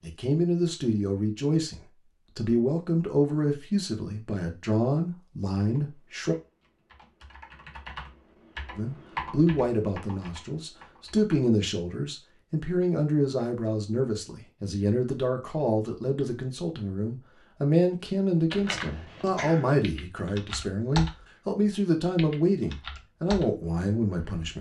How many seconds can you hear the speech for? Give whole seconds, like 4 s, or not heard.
22 s.